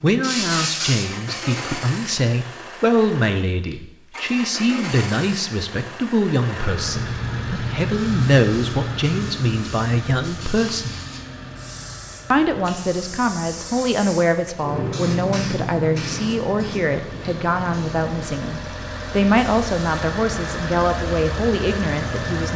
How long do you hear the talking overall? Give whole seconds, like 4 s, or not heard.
21 s.